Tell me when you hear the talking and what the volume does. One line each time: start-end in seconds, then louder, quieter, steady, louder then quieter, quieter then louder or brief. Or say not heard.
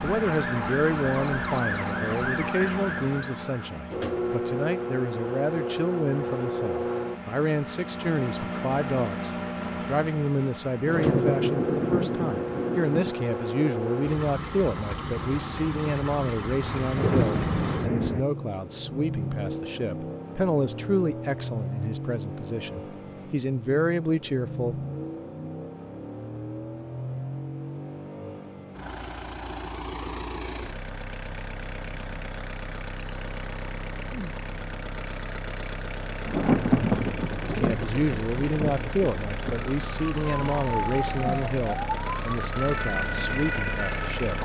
0.0-24.8 steady
37.5-44.4 quieter.